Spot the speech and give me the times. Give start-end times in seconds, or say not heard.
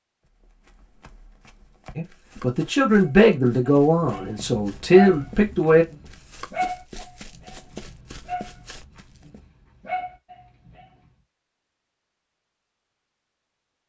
1.9-5.8.